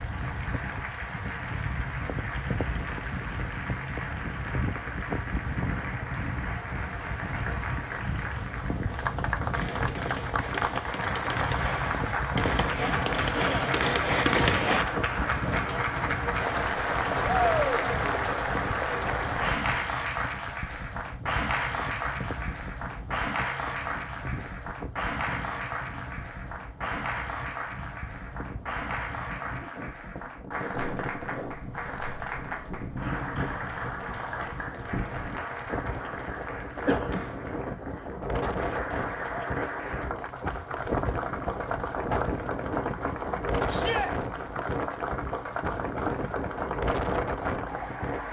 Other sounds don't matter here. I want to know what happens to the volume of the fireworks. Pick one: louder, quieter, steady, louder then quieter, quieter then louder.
louder.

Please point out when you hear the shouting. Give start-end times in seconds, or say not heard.
17.2-17.9, 43.6-44.1.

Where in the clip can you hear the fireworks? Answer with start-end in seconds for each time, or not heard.
8.8-14.8.